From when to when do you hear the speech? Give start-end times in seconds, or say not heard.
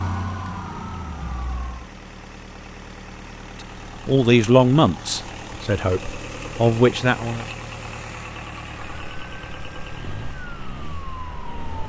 4.0-7.5.